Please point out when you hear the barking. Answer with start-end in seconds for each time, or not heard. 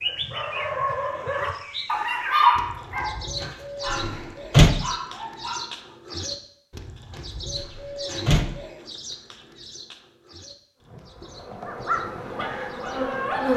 0.0-6.0, 11.7-13.5.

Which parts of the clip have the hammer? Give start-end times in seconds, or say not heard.
not heard.